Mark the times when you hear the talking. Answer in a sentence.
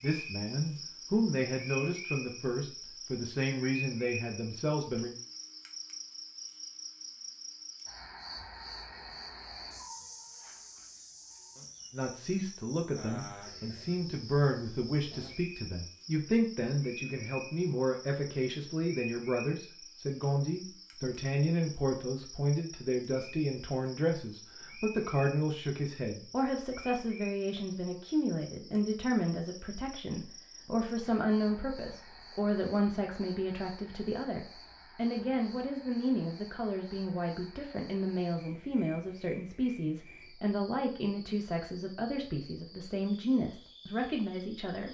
The talking can be heard from 0.0 to 5.1 s and from 11.9 to 44.8 s.